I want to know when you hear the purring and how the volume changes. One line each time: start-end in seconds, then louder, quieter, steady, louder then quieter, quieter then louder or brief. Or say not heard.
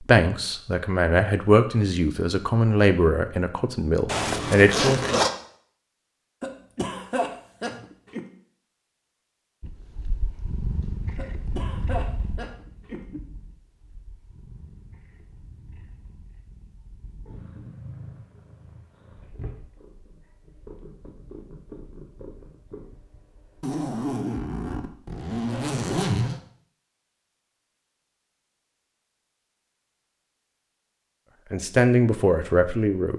9.6-23.6 quieter then louder.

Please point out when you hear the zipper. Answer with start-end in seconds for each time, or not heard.
4.0-5.3, 23.6-26.4.